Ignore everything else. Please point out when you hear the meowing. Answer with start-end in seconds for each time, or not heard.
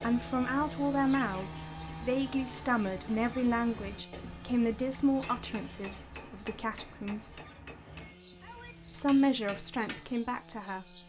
8.0-8.8.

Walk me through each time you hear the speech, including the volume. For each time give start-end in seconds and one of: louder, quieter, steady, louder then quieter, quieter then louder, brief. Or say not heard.
0.0-7.4 quieter
8.9-10.9 brief.